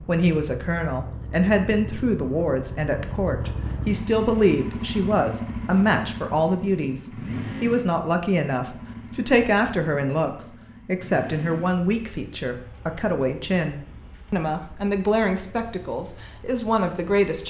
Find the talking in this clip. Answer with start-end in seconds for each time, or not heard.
0.1-17.4.